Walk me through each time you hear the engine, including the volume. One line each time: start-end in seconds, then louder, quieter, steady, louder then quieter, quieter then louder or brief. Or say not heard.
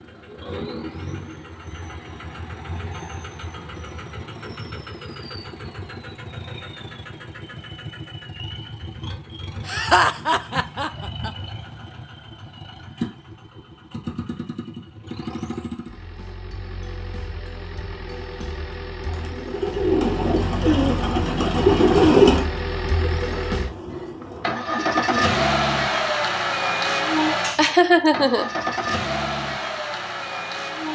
0.0-30.9 louder.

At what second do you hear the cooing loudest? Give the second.
22 s.